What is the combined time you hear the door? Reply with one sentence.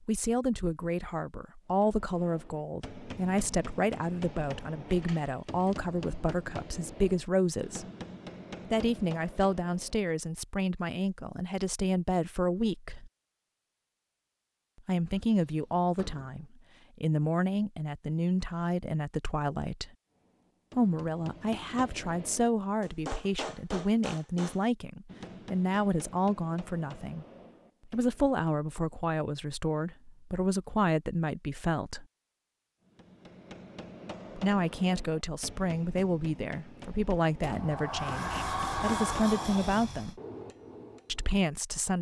The door can be heard for 5 seconds in total.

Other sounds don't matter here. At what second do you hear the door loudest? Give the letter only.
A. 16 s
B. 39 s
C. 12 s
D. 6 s
B.